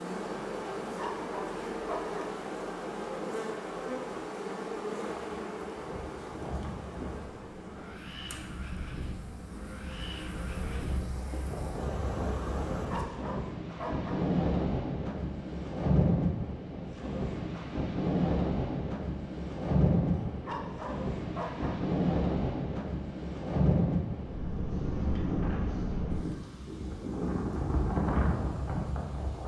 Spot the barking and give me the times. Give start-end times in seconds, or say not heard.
0.8-2.4, 12.8-14.2, 20.1-21.8.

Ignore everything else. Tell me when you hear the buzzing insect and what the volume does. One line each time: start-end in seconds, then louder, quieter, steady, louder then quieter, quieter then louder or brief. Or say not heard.
0.0-13.1 quieter then louder.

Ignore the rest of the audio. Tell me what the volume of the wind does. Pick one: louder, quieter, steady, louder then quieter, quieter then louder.
louder.